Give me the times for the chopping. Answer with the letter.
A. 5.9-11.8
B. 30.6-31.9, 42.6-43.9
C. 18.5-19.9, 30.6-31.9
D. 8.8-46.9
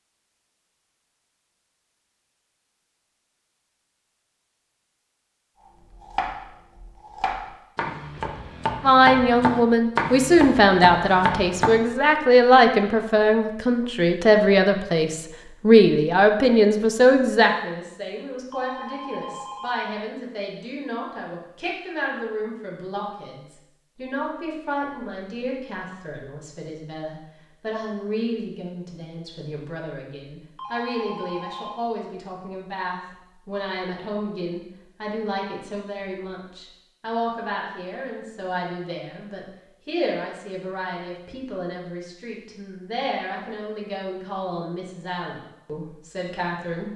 A.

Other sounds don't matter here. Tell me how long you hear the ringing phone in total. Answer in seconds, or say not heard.
3 s.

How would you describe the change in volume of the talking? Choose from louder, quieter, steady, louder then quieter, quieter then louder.
quieter.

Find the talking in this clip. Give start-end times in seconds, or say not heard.
8.8-46.9.